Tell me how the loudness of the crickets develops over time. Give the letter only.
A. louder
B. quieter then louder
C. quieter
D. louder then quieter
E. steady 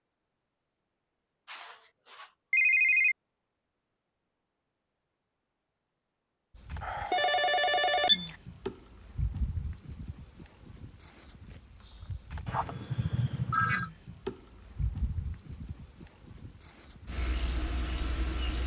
E.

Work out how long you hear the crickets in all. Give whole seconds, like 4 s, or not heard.
12 s.